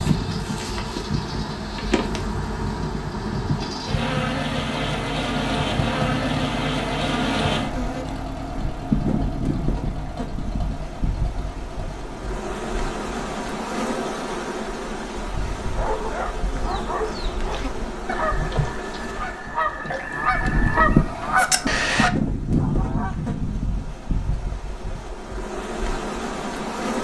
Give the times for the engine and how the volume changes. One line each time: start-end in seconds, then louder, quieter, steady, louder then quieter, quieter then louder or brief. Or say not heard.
0.0-13.3 louder then quieter.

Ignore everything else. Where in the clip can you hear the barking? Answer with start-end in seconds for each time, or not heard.
15.8-17.6.